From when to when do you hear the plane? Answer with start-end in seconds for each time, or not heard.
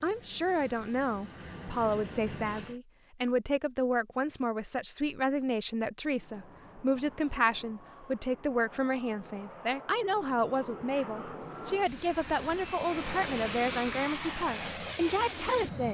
0.0-2.8, 6.0-15.8.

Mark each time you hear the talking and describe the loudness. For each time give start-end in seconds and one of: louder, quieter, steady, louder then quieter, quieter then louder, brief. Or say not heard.
0.0-15.8 steady.